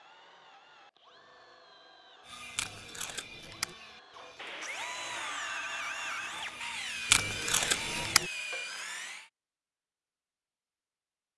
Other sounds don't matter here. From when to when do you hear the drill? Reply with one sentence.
The drill can be heard from 0.0 to 9.3 s.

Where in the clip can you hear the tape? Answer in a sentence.
The tape can be heard from 2.5 to 3.8 s and from 7.1 to 8.3 s.